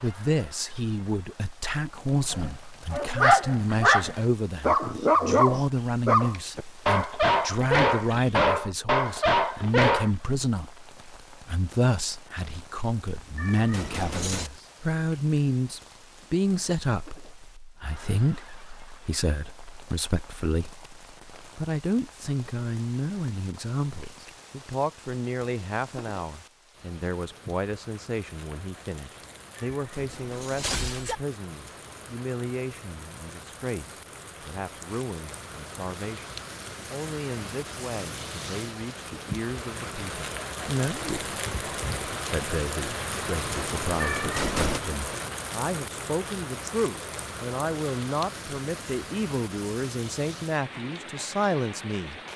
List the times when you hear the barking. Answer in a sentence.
You can hear the barking from 2.3 to 10.1 s.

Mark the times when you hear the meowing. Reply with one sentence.
The meowing can be heard from 13.3 to 14.5 s, from 29.6 to 31.1 s and from 44.0 to 44.8 s.